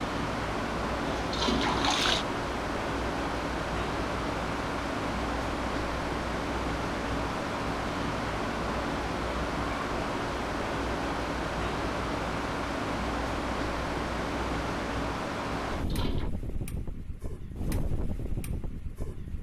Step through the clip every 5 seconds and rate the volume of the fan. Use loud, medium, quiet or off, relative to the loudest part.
loud, loud, loud, medium.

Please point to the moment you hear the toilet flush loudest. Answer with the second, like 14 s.
2 s.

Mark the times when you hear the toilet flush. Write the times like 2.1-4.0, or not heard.
1.1-2.2, 15.8-16.3.